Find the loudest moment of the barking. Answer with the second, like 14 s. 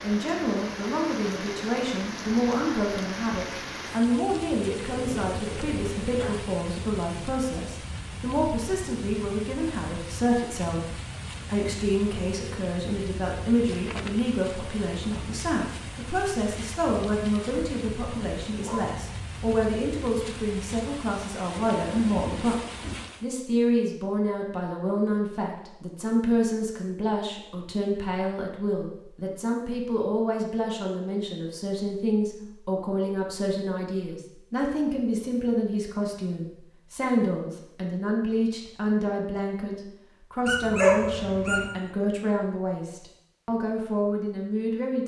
41 s.